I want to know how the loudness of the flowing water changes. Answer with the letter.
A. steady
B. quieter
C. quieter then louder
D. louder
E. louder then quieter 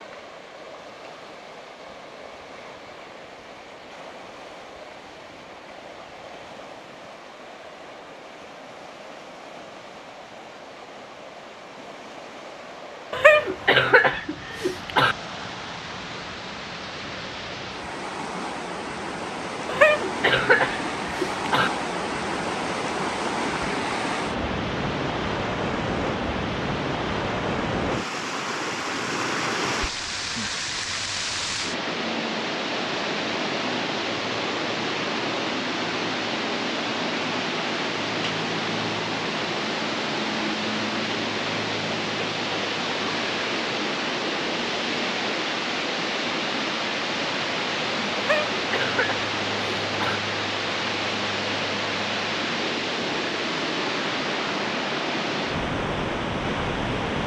D.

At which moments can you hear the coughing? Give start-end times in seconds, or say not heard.
13.1-15.2, 19.6-21.7, 48.1-50.2.